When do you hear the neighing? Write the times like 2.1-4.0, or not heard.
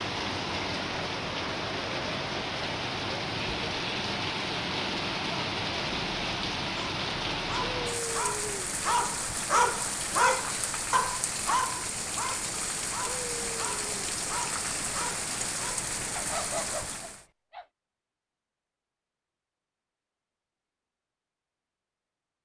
not heard.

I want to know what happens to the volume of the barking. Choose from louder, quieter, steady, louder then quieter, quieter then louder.
quieter.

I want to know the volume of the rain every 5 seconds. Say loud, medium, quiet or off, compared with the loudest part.
loud, loud, loud, loud, off.